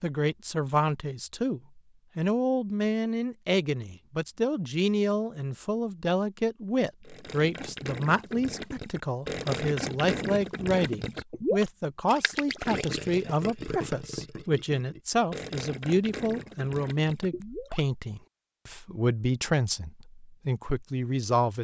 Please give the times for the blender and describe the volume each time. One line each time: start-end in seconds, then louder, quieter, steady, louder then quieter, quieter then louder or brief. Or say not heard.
not heard.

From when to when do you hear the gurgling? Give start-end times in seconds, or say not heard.
7.0-17.9.